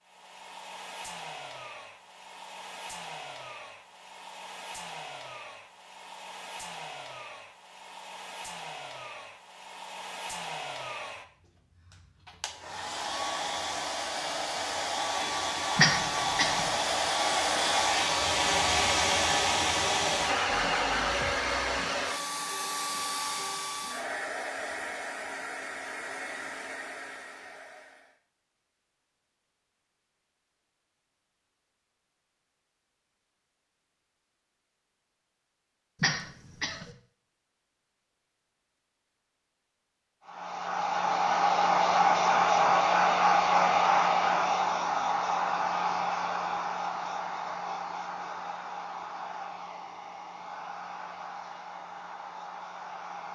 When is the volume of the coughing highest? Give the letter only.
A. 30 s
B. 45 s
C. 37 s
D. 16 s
D.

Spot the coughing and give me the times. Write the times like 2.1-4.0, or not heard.
15.8-16.7, 36.0-37.0.